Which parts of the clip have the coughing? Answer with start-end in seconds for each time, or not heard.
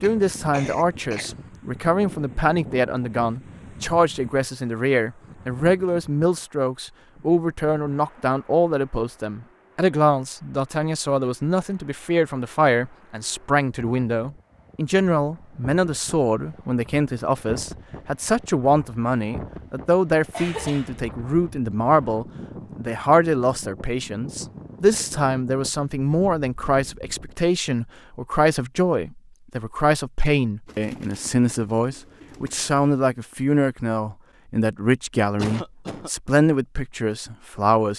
0.0-1.4, 20.3-21.0, 35.4-36.1.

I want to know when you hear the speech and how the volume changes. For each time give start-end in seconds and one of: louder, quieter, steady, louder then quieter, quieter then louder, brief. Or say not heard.
0.0-37.9 steady.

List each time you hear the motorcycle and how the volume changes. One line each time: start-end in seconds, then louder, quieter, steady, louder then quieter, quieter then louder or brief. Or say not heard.
not heard.